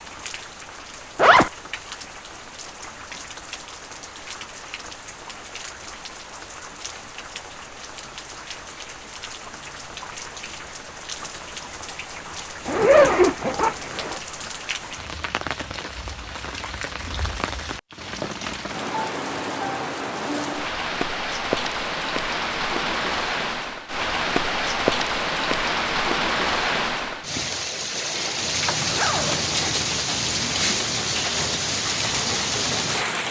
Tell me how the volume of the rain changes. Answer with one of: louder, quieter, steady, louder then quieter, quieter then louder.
louder.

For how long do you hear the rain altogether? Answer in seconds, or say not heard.
33 s.